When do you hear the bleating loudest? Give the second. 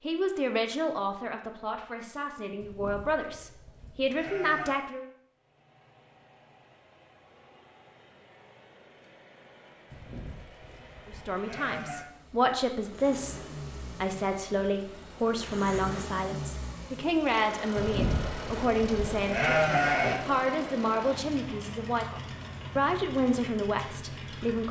20 s.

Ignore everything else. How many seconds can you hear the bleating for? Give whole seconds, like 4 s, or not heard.
7 s.